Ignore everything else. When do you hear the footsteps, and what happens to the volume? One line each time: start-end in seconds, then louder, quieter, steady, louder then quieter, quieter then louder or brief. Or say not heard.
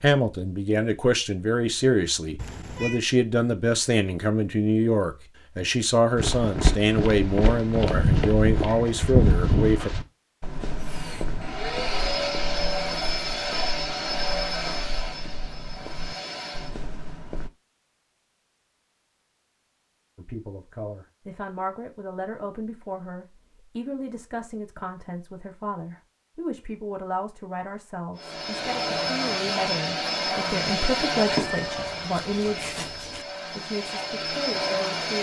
6.2-17.5 quieter.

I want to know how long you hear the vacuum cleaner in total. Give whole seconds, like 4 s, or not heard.
13 s.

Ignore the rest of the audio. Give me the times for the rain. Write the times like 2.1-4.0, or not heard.
not heard.